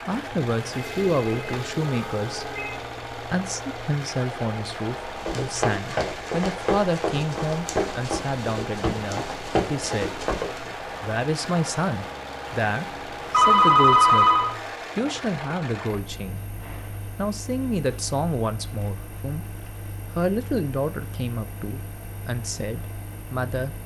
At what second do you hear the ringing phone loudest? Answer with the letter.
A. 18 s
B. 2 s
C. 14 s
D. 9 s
C.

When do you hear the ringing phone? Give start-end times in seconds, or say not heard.
0.8-2.8, 13.3-14.6.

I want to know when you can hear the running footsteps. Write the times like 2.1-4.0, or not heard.
5.2-10.7.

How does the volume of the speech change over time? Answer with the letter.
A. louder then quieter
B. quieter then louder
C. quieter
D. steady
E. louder
D.